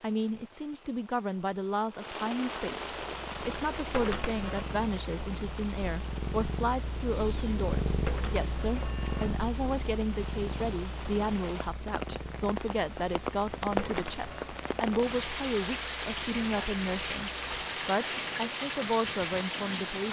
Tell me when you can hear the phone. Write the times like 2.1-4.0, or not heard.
3.9-4.7, 8.1-9.3, 13.8-14.6.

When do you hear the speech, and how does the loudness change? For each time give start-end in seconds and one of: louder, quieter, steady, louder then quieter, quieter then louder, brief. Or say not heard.
0.0-20.0 steady.